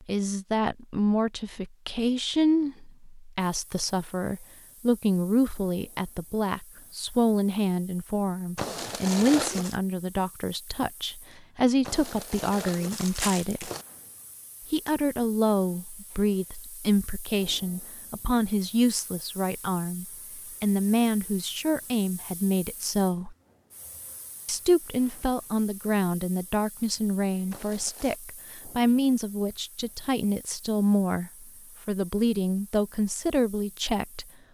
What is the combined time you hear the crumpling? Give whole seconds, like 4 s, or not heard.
4 s.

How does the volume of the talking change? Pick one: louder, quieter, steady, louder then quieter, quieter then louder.
steady.